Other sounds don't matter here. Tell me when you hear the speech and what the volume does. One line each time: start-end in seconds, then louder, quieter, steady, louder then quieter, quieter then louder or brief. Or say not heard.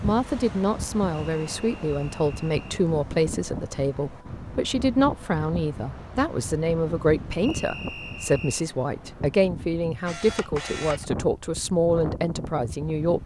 0.0-13.2 steady.